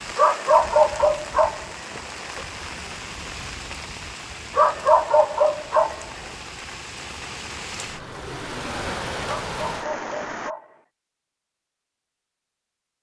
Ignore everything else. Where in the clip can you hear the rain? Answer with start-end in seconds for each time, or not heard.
0.0-10.6.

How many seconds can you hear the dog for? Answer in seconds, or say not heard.
5 s.